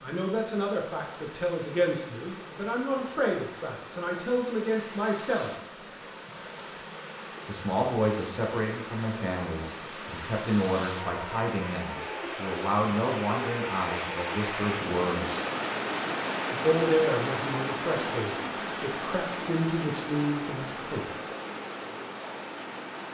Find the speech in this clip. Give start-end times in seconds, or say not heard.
0.0-5.5, 7.5-15.4, 16.5-21.1.